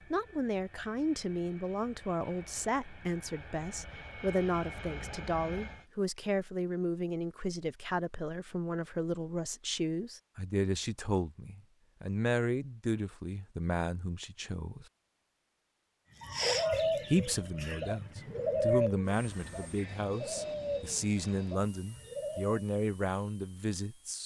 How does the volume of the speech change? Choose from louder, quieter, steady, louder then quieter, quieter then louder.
steady.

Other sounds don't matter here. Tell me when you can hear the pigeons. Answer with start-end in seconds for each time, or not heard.
16.2-22.6.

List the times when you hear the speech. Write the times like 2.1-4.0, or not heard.
0.1-14.8, 17.1-24.2.